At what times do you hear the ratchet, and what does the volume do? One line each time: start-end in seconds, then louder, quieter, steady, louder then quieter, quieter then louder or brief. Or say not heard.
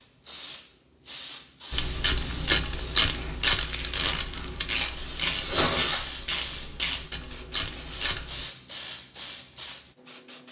1.7-8.4 quieter.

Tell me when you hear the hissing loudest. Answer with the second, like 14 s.
4 s.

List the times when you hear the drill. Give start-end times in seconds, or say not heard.
4.3-6.1.